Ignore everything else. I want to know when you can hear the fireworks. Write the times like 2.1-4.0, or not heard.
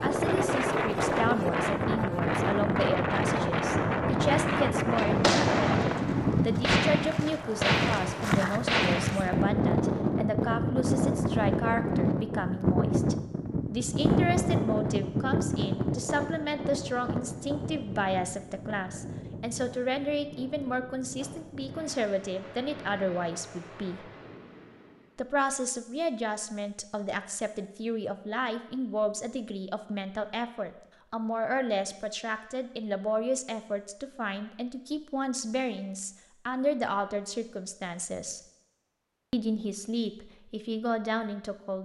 4.0-9.4.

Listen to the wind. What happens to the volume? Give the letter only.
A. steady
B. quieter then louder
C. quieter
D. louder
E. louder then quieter
C.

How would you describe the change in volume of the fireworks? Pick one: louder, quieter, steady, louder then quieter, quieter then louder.
steady.